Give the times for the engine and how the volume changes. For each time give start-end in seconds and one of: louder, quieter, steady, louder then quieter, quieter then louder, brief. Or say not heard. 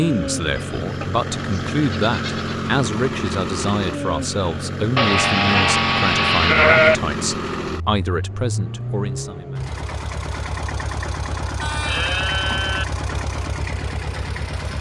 0.0-14.7 steady.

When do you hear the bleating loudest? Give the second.
7 s.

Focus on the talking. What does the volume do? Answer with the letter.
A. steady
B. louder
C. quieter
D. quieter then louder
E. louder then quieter
A.